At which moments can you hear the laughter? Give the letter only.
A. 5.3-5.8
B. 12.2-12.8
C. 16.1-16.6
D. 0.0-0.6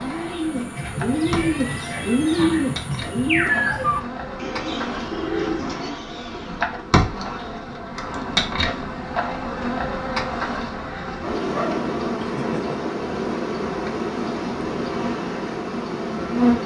B.